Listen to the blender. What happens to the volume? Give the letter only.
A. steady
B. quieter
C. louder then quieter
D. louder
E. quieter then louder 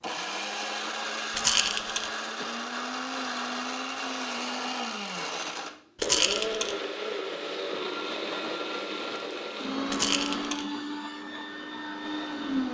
A.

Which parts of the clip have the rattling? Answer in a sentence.
The rattling can be heard from 1.4 to 2.1 s, from 6.0 to 6.8 s and from 9.9 to 10.7 s.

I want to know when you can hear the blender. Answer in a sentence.
The blender can be heard from 0.0 to 12.7 s.